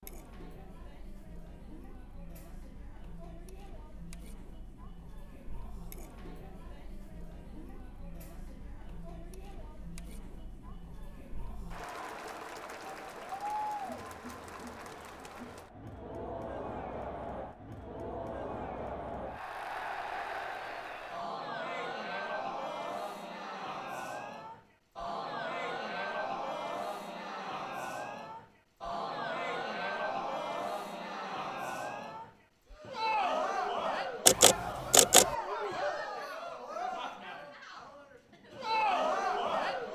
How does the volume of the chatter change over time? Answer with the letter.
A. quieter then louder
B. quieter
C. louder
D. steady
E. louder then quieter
C.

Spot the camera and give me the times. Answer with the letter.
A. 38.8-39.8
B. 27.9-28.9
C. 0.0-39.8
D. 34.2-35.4
D.